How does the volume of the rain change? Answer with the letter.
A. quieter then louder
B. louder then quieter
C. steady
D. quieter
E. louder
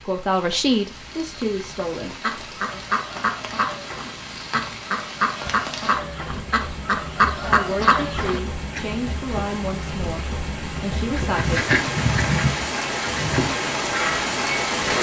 E.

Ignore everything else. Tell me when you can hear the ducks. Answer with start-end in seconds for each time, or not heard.
2.2-8.8, 11.2-14.9.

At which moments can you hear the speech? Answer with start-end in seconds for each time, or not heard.
0.1-2.8, 7.5-11.6.